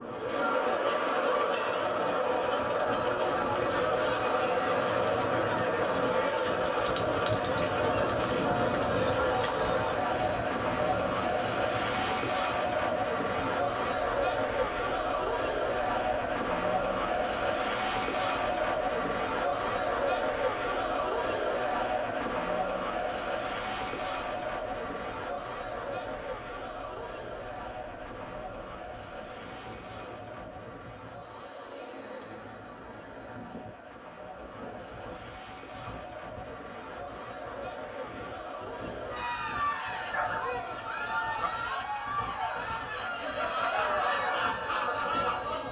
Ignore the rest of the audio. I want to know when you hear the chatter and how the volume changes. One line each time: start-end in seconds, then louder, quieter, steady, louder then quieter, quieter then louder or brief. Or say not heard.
0.0-45.6 quieter then louder.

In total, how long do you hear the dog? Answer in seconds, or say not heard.
2 s.